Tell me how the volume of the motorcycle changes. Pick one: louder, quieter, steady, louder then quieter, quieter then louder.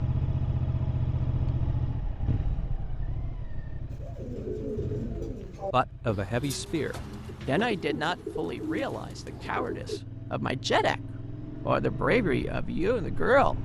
quieter then louder.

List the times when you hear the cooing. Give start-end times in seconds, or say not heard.
3.9-10.0.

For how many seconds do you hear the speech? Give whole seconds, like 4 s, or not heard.
8 s.